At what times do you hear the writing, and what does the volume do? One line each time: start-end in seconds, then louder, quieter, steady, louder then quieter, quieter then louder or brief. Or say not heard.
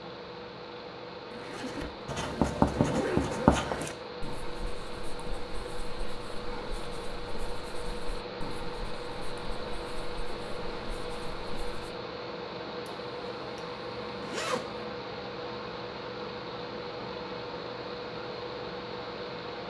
2.0-11.9 quieter.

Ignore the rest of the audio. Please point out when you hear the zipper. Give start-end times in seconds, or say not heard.
1.3-3.6, 12.8-14.8.